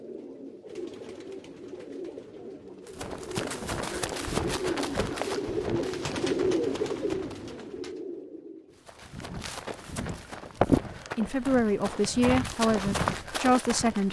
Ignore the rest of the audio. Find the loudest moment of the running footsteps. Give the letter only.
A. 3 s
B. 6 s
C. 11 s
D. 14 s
C.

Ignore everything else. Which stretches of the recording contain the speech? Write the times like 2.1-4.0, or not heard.
11.2-14.0.